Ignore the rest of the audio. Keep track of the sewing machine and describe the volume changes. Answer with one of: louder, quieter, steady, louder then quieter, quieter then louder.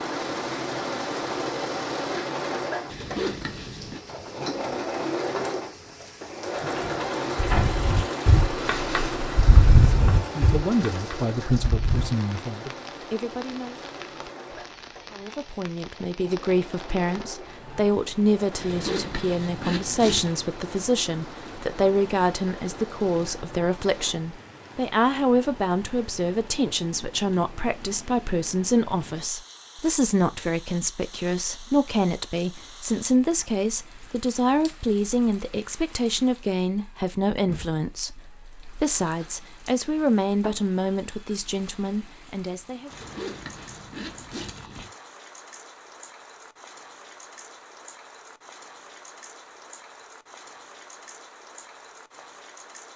quieter.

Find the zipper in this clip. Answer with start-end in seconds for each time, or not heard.
2.9-4.0, 18.6-20.4, 42.9-44.9.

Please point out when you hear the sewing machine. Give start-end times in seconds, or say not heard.
0.0-24.2.